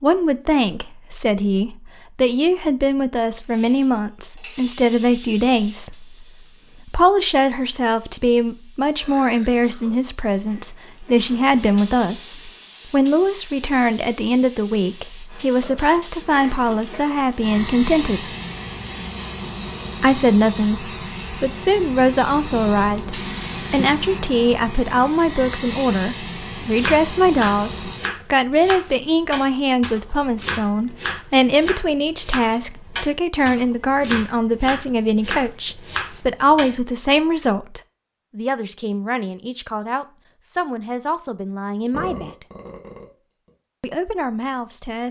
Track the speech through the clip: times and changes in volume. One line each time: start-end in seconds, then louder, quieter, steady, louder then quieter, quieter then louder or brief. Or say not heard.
0.0-18.4 steady
20.0-42.5 quieter
43.8-45.0 brief.